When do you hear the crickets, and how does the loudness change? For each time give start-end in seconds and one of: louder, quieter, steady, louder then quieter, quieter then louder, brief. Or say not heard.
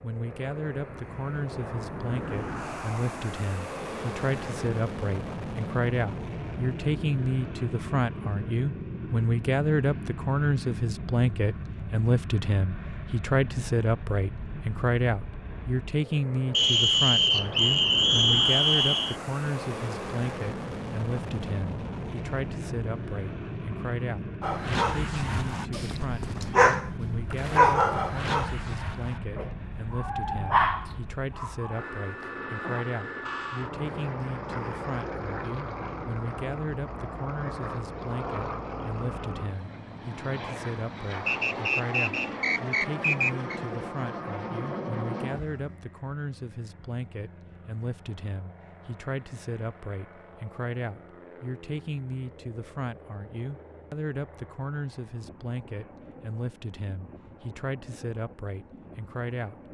not heard.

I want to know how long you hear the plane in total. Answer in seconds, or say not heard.
60 s.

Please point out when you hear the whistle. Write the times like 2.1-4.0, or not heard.
16.5-19.1, 41.2-43.6.